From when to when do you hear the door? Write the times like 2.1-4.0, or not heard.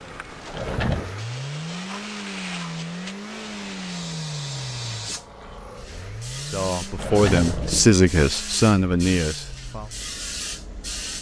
0.5-1.1, 7.0-7.8.